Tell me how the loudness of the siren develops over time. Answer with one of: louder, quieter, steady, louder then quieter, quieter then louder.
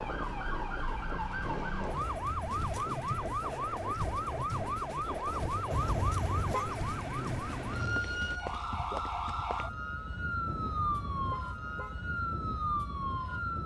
steady.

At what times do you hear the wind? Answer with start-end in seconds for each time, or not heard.
0.0-8.4.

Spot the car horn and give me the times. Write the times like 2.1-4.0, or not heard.
1.9-2.6, 5.7-6.8, 10.4-12.0.